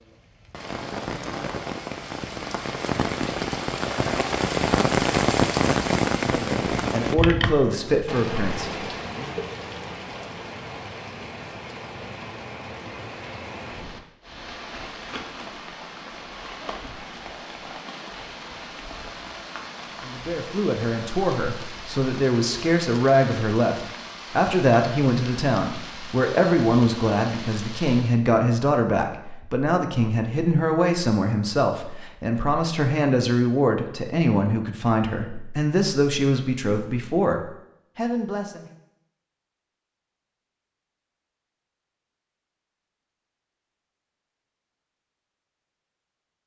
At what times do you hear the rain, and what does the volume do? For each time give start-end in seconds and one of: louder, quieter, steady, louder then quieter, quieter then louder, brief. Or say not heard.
0.0-28.2 quieter.